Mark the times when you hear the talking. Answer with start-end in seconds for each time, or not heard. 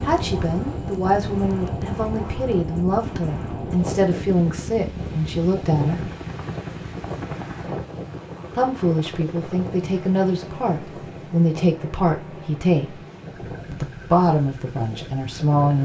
0.0-6.0, 8.5-12.9, 13.7-15.8.